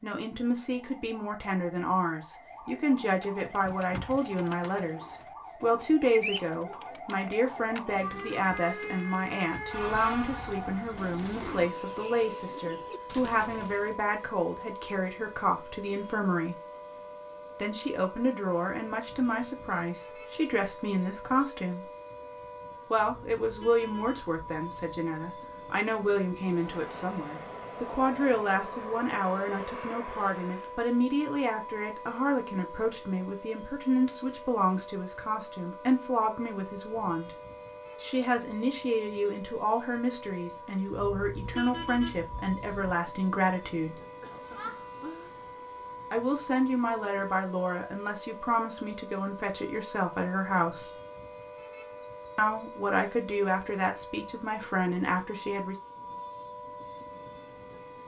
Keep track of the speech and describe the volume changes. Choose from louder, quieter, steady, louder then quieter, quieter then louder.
steady.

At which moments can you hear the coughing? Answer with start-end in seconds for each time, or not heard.
44.2-45.3.